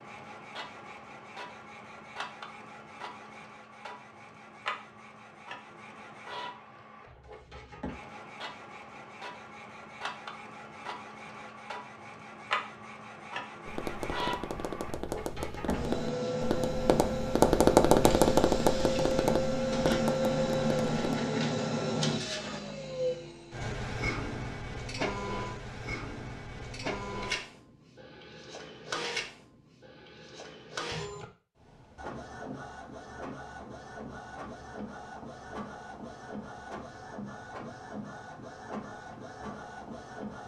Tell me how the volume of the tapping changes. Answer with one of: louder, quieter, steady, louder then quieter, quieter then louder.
louder then quieter.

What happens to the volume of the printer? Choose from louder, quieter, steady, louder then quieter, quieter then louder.
louder then quieter.